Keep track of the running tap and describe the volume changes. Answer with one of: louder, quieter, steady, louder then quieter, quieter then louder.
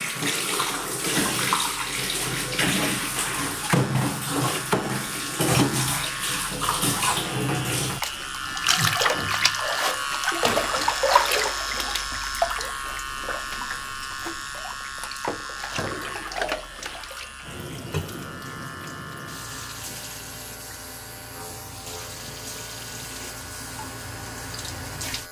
quieter.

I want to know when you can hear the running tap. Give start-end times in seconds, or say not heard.
0.0-25.2.